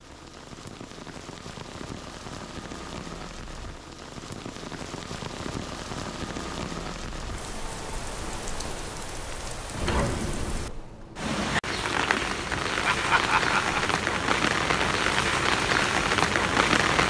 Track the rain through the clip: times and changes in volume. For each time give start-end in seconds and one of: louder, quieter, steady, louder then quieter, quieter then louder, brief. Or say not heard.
0.0-17.0 louder.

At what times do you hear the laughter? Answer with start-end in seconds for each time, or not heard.
12.8-13.9.